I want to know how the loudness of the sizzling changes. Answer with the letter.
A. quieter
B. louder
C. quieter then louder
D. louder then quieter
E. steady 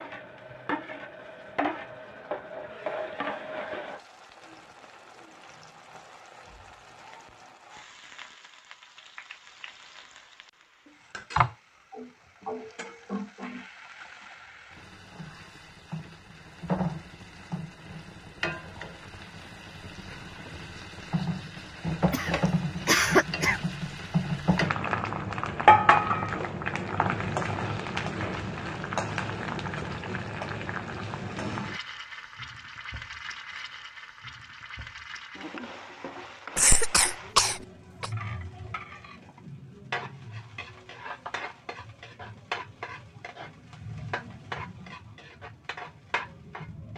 D.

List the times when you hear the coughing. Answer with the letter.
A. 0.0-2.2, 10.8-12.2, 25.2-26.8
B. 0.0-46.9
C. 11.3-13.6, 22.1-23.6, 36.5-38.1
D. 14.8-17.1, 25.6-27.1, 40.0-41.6
C.